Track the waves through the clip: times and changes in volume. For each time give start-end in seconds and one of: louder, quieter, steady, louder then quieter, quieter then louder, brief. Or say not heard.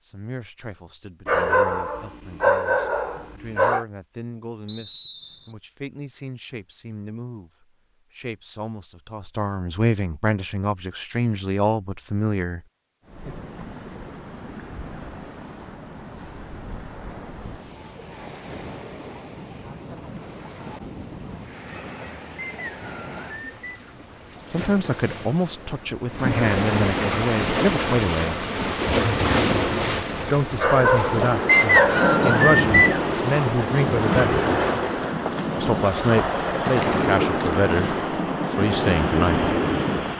13.0-40.1 louder.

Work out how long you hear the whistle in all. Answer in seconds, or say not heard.
4 s.